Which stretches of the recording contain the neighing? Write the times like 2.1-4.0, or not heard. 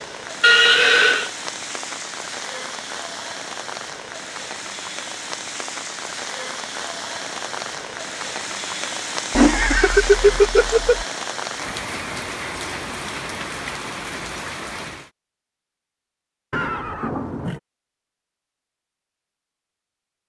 0.4-1.3, 9.3-11.1, 16.5-17.6.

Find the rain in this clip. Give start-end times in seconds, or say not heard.
0.0-15.1.